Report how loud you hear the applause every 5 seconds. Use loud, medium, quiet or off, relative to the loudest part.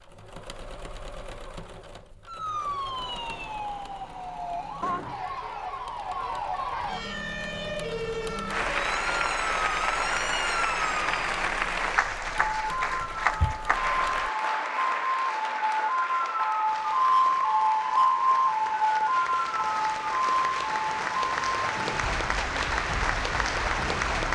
off, loud, loud, medium, loud.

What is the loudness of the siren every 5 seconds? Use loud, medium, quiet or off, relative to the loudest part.
medium, medium, medium, loud, medium.